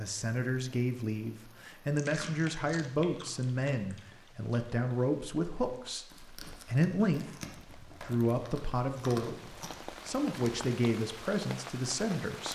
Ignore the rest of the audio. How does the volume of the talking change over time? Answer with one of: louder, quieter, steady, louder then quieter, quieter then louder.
steady.